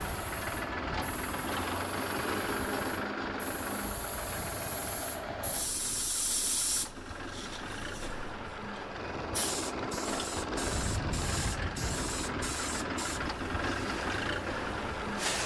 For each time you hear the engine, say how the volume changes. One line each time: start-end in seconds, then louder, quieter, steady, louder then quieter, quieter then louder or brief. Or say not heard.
0.0-15.4 quieter then louder.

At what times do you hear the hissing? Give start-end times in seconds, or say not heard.
0.0-15.4.